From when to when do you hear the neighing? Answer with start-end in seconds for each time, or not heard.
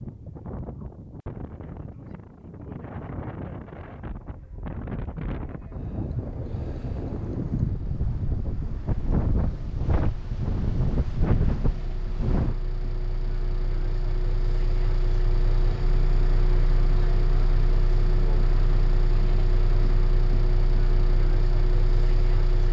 not heard.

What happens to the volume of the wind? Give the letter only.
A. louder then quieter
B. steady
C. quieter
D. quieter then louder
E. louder
E.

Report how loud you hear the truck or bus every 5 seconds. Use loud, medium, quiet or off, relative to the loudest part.
off, quiet, medium, loud, loud.